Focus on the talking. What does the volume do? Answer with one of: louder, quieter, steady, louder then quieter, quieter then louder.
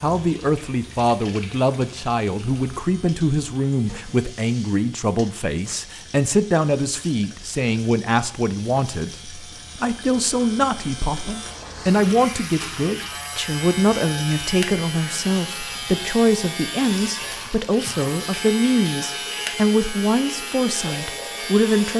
steady.